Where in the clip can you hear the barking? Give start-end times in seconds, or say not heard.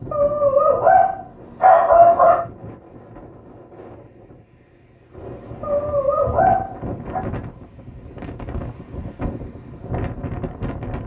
0.1-2.5, 5.6-7.2.